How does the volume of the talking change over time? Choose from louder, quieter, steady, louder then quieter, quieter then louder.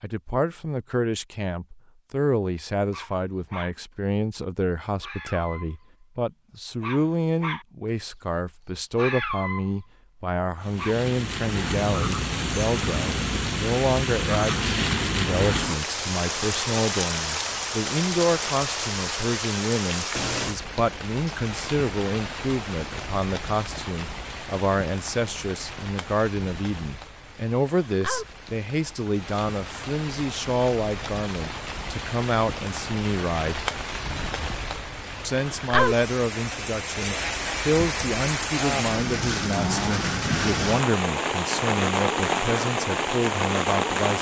steady.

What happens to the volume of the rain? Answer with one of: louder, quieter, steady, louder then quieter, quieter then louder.
quieter then louder.